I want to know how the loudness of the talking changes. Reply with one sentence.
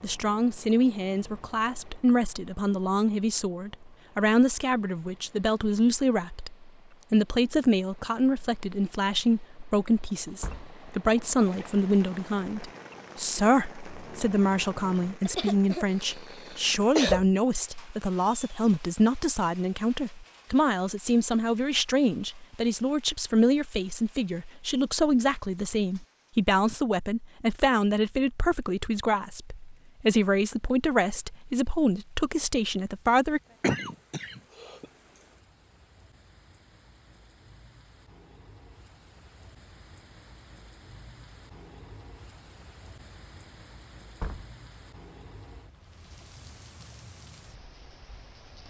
The volume of the talking stays about the same.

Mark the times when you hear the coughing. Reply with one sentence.
You can hear the coughing from 15.2 to 17.2 s and from 33.6 to 34.9 s.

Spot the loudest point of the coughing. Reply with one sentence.
The loudest moment of the coughing is at 17 seconds.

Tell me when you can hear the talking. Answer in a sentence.
The talking can be heard from 0.0 to 33.4 s.